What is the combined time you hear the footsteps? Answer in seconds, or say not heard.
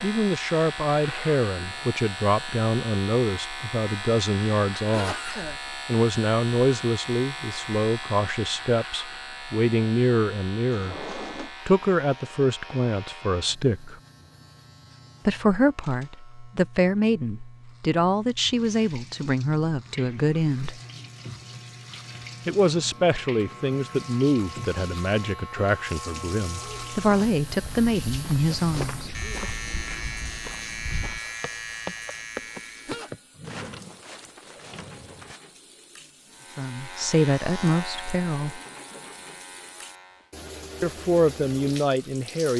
9 s.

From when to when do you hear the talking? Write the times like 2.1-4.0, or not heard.
0.0-13.9, 15.2-20.8, 22.4-29.5, 36.5-38.6, 40.8-42.5.